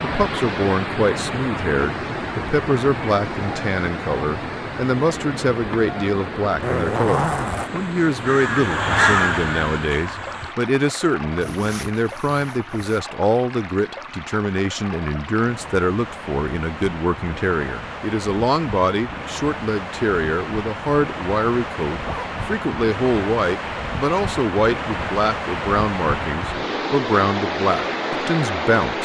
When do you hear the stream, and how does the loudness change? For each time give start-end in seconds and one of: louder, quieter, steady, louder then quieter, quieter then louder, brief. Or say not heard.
0.0-29.0 quieter then louder.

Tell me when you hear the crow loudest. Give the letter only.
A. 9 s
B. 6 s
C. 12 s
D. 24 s
A.